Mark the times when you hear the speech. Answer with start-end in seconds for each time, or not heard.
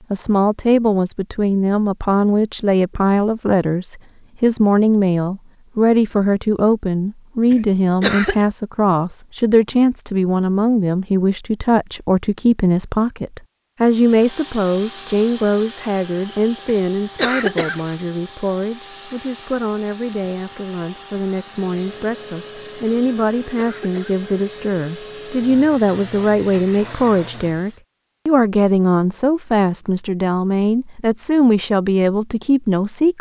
0.1-33.1.